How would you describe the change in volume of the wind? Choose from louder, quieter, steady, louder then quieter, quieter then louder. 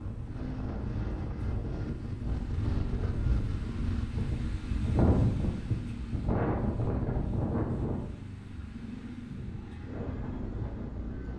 louder then quieter.